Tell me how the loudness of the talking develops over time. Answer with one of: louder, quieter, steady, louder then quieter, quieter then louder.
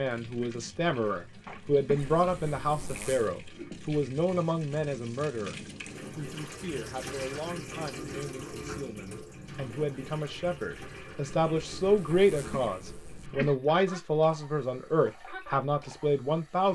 quieter then louder.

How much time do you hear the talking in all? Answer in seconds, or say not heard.
16 s.